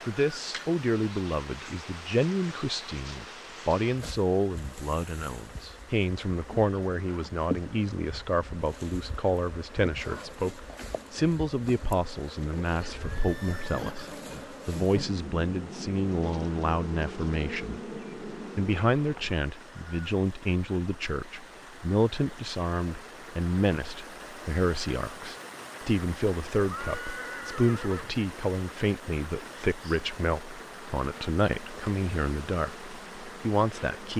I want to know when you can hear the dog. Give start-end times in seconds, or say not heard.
not heard.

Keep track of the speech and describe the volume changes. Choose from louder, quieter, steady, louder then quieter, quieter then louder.
steady.